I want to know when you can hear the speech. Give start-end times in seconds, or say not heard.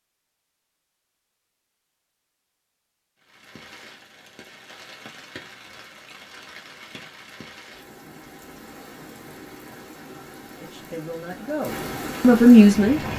10.6-13.1.